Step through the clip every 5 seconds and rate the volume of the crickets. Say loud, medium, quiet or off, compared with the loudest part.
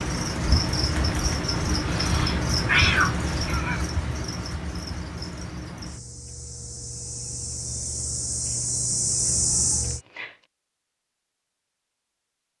loud, loud, off.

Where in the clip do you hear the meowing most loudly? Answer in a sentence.
The volume of the meowing peaks at 3 seconds.